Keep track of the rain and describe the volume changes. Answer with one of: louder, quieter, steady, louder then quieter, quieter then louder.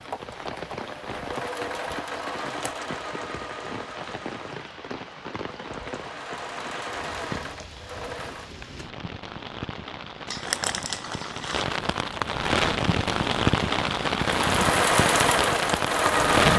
louder.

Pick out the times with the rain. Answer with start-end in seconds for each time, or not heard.
0.0-16.5.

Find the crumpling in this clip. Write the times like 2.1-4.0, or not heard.
2.5-3.0, 10.2-11.7.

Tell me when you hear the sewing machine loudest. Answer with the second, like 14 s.
15 s.